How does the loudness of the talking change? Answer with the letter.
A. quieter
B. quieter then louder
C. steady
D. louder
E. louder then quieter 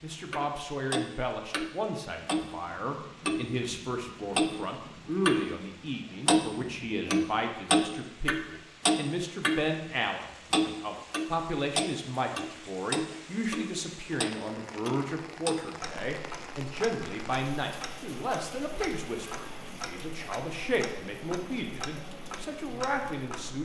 C.